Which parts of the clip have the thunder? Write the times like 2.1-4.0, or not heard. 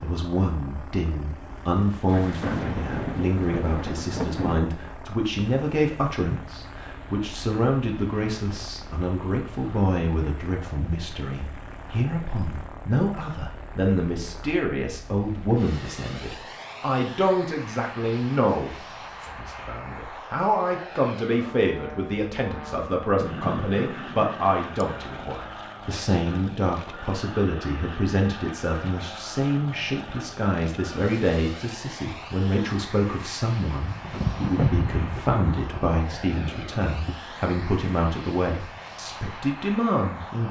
2.0-4.7, 23.2-25.3, 33.8-37.1.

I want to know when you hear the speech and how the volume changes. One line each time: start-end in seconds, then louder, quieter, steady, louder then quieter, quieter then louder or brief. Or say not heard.
0.0-40.4 steady.